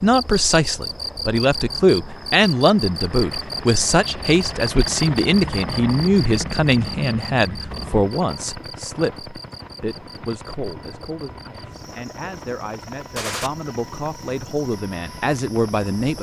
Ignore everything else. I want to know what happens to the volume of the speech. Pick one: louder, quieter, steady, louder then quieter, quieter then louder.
quieter then louder.